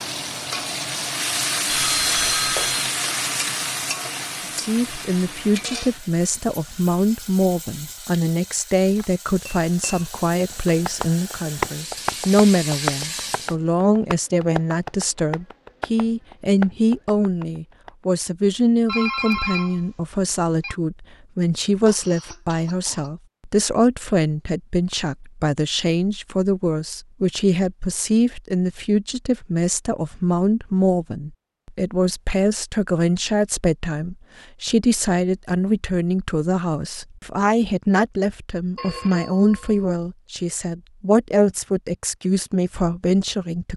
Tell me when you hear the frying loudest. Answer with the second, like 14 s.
2 s.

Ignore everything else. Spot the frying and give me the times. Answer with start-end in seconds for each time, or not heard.
0.0-13.6.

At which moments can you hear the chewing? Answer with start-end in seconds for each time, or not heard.
not heard.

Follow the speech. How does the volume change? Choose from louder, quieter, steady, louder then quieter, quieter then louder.
steady.